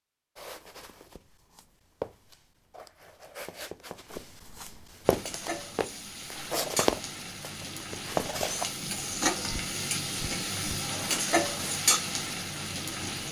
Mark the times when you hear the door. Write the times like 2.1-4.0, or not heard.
not heard.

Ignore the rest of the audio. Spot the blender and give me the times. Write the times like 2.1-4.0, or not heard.
not heard.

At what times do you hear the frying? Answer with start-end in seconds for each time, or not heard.
5.0-13.2.